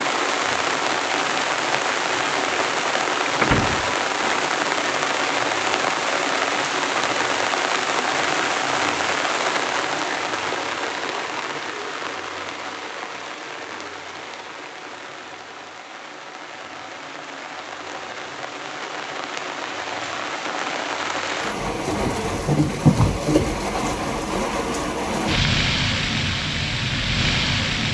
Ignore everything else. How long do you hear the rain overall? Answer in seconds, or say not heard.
28 s.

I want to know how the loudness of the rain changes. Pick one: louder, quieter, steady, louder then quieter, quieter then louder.
quieter then louder.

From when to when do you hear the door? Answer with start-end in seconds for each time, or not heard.
3.4-4.3.